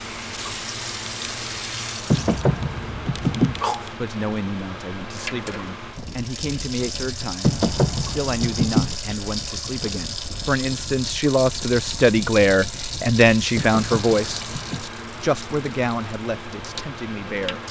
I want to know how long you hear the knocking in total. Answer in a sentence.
You can hear the knocking for 4 seconds altogether.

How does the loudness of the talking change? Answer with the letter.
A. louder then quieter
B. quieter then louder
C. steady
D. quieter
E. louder
A.